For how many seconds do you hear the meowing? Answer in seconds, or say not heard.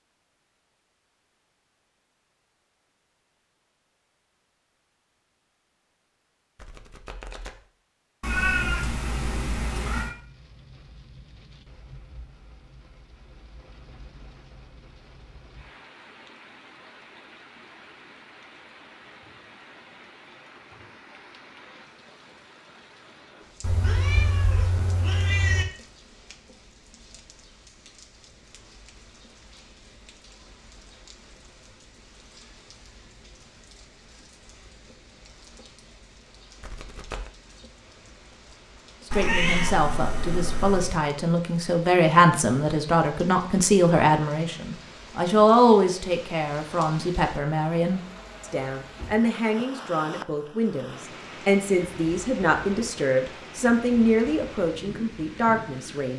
6 s.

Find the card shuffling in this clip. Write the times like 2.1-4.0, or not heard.
6.5-7.7, 36.6-37.3.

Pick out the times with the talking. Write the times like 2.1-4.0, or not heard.
39.0-56.1.